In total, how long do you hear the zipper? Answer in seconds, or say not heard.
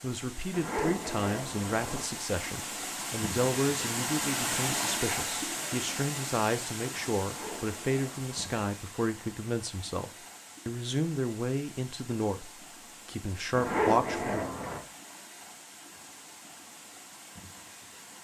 4 s.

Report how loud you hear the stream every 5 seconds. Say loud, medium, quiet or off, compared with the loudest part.
loud, loud, quiet, quiet.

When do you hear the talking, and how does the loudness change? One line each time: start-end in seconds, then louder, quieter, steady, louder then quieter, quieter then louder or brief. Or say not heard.
0.0-14.4 steady.